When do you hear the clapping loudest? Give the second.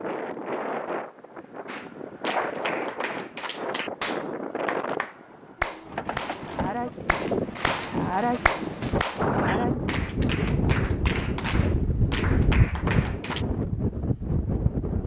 8 s.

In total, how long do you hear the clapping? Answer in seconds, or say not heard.
12 s.